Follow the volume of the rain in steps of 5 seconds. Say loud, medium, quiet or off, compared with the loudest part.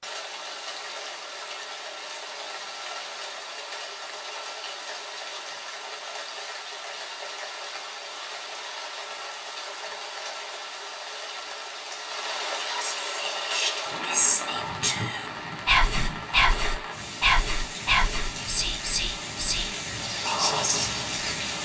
medium, medium, loud, loud, loud.